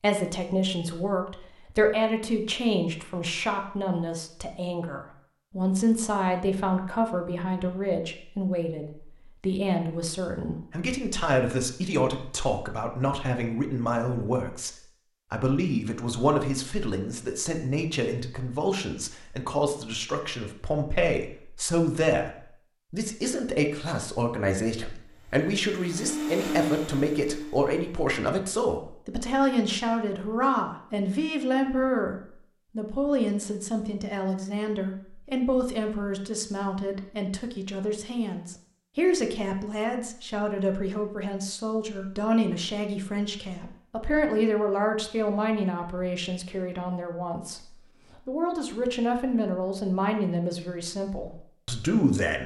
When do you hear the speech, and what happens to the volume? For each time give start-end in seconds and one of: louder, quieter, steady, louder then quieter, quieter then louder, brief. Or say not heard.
0.0-52.4 steady.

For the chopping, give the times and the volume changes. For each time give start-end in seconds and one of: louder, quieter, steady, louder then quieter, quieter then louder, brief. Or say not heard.
not heard.